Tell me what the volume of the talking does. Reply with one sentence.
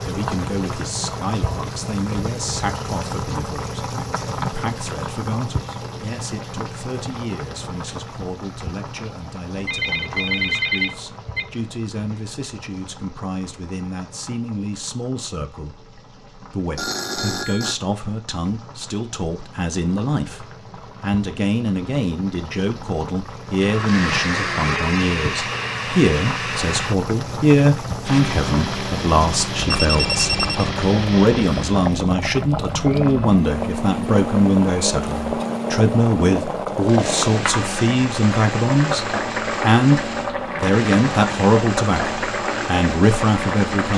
The loudness of the talking goes up.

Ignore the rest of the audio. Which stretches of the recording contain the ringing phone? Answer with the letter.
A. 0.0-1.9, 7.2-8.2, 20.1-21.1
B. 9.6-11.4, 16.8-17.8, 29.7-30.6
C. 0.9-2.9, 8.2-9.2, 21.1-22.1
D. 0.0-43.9
B.